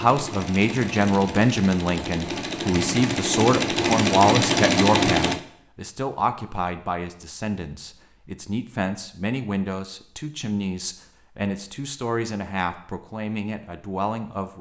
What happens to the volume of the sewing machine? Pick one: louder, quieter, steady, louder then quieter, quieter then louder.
louder.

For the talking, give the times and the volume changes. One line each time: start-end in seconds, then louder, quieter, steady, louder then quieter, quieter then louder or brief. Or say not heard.
0.0-14.5 quieter.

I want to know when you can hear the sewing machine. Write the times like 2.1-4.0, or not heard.
0.0-5.4.